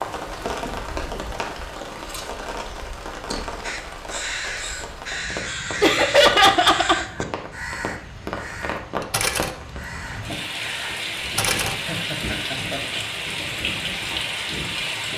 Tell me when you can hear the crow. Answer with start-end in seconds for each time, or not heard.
3.6-11.9.